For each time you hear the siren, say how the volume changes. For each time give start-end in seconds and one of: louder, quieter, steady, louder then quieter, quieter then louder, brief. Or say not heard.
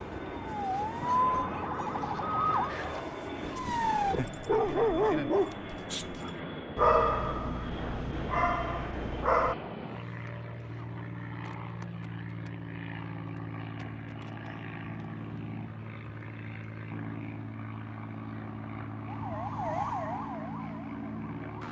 0.0-4.2 louder then quieter
19.1-21.5 brief.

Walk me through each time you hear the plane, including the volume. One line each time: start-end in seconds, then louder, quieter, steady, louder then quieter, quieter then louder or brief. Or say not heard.
0.0-21.6 steady.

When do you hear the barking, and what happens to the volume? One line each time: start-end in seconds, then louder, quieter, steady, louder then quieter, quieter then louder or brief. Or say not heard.
1.0-9.6 louder then quieter.